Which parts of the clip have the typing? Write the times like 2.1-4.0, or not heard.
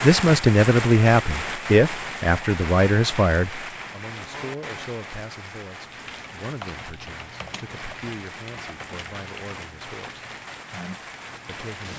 5.8-11.7.